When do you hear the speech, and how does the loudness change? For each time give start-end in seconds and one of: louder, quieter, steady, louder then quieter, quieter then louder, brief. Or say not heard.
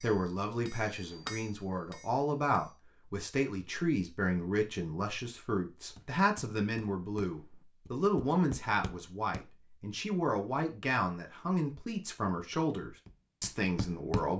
0.0-14.3 steady.